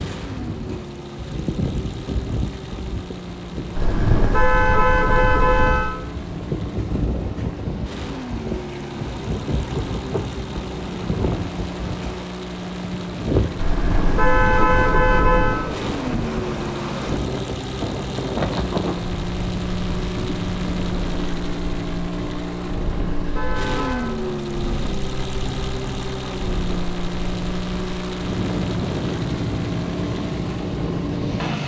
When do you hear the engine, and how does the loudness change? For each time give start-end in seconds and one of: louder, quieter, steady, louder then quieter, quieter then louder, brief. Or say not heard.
0.0-31.6 louder.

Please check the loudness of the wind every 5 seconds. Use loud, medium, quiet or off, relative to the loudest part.
loud, loud, loud, loud, medium, loud, loud.